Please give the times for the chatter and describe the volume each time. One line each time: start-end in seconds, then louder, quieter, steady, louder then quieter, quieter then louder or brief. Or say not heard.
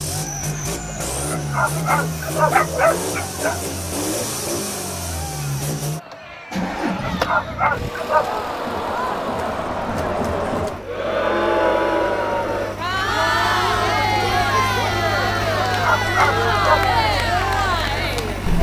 0.0-18.5 louder.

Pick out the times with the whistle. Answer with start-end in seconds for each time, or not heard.
not heard.